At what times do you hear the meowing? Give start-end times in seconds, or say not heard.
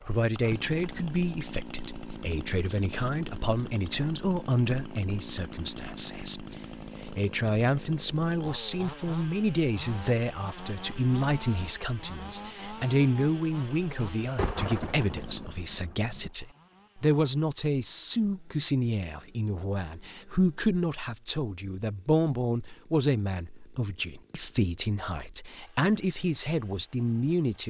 not heard.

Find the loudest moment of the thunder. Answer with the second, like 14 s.
15 s.